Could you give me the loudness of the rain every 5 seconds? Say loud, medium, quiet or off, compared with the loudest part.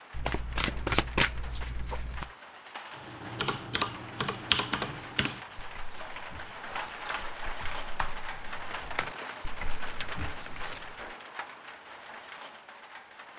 medium, loud, loud.